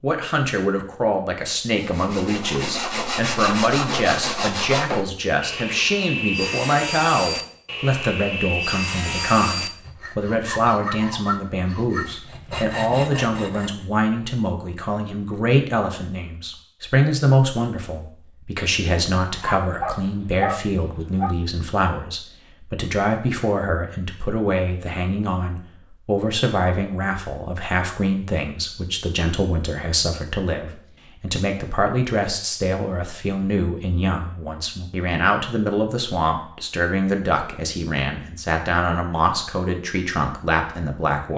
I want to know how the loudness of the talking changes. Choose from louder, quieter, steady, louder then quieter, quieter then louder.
steady.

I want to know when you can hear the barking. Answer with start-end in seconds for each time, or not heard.
19.2-21.4.